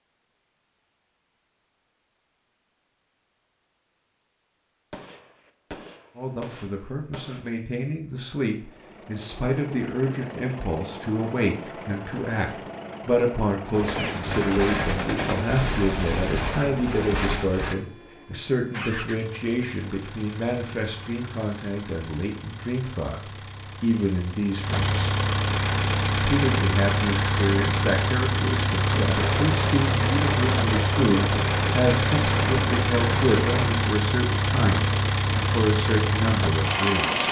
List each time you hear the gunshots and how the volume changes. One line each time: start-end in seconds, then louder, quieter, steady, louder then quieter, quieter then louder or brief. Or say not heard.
4.9-7.6 brief
13.7-17.8 steady
28.9-33.8 steady.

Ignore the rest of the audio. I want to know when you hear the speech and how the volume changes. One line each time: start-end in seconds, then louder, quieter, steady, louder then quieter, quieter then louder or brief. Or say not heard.
6.2-25.1 steady
26.1-37.2 steady.